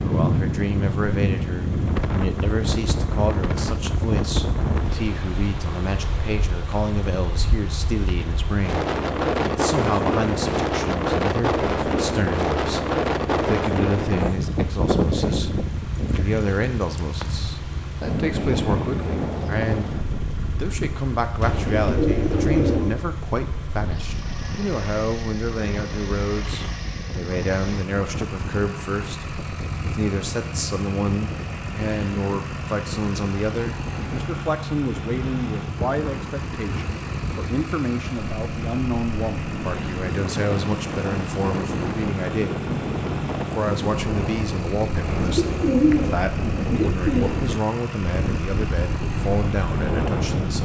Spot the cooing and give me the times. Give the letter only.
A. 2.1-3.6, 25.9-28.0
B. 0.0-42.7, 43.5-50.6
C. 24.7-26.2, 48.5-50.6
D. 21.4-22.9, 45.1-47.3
D.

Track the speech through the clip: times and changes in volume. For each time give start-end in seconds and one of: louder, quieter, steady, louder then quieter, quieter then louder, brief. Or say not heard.
0.0-42.7 steady
43.5-50.6 steady.